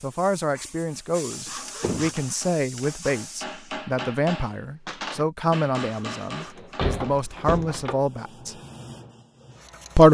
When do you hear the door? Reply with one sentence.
You can hear the door from 1.8 to 2.2 s and from 6.4 to 8.0 s.